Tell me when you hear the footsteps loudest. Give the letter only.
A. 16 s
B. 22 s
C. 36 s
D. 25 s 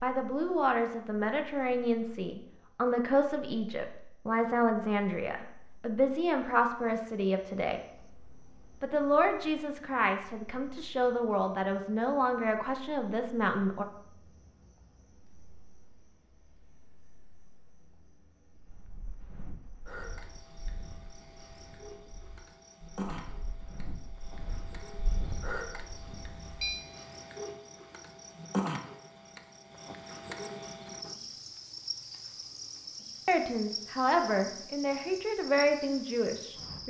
D.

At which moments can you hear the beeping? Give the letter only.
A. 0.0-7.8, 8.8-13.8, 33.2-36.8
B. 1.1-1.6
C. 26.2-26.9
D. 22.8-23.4
C.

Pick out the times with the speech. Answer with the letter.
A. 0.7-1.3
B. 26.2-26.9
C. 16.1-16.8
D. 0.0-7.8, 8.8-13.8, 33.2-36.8
D.